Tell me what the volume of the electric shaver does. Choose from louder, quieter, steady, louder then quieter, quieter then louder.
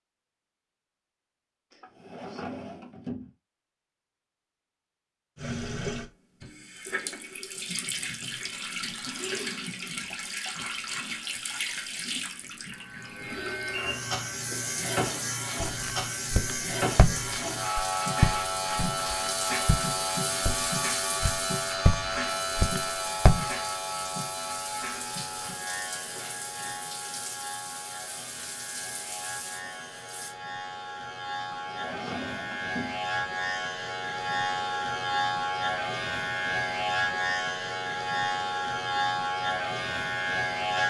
quieter then louder.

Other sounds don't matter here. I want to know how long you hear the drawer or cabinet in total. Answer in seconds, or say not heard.
3 s.